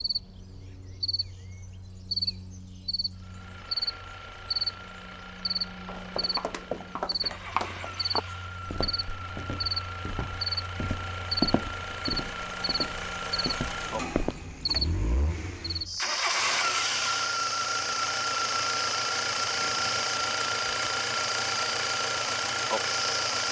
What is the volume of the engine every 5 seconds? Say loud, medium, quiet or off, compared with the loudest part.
quiet, quiet, medium, loud, loud.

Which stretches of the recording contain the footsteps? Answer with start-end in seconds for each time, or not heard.
5.8-14.4.